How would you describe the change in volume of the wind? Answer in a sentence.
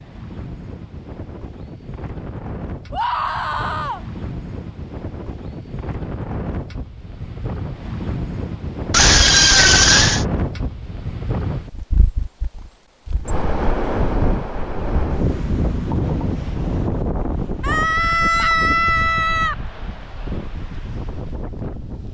The loudness of the wind goes up, then down.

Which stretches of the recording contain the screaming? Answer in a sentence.
You can hear the screaming from 2.9 to 4.0 s, from 8.9 to 10.2 s and from 17.6 to 19.6 s.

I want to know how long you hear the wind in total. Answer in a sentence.
The wind can be heard for 22 seconds in total.